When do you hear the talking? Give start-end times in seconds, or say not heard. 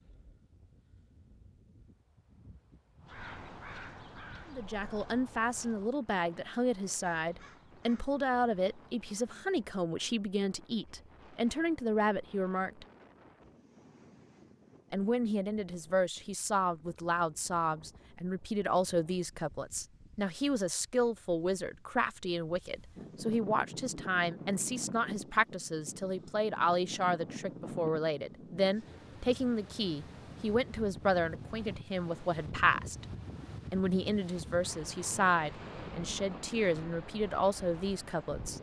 4.5-12.8, 14.9-33.0, 33.7-38.5.